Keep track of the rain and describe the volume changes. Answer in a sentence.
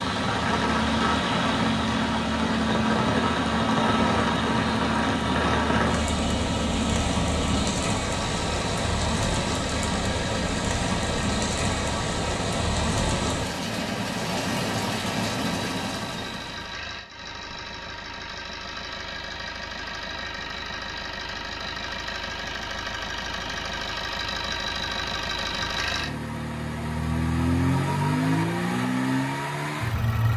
The volume of the rain stays about the same.